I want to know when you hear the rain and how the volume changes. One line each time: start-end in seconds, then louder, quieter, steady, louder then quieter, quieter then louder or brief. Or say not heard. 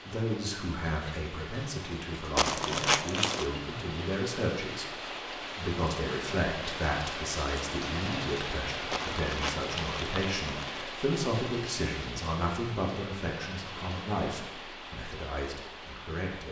0.0-16.4 louder then quieter.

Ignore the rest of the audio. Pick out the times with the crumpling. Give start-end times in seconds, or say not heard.
2.4-3.5, 8.9-10.8.